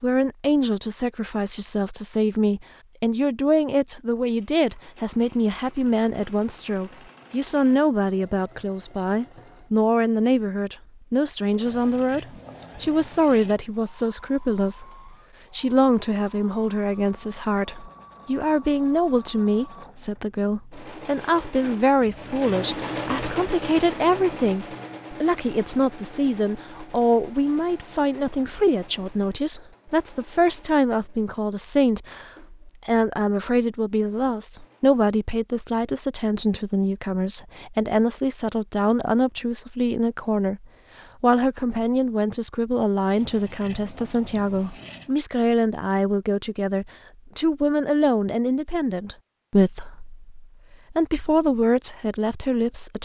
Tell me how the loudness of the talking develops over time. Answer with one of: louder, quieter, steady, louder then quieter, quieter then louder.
steady.